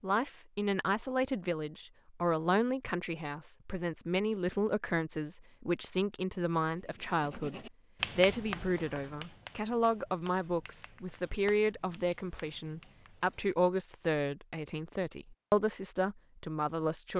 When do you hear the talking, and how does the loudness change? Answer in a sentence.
The talking can be heard from 0.0 to 17.1 s, at a steady volume.